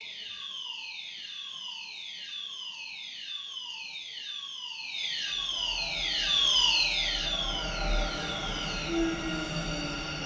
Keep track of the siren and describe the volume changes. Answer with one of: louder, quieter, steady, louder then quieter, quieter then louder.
louder then quieter.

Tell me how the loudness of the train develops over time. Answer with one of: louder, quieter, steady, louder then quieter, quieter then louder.
louder.